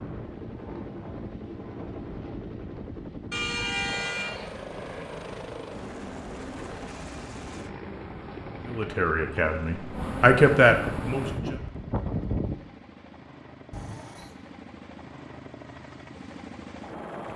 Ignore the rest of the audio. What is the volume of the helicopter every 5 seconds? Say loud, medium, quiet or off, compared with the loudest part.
loud, loud, medium, loud.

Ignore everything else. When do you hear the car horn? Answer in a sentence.
The car horn can be heard from 3.3 to 4.5 s and from 13.7 to 14.4 s.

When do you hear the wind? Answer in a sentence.
The wind can be heard from 0.0 to 12.6 s.